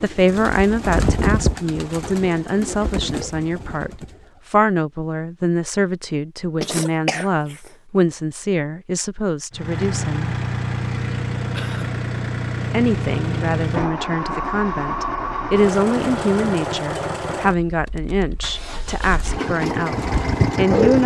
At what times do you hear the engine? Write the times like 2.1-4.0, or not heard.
9.5-21.0.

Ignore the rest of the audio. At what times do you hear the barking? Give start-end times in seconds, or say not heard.
not heard.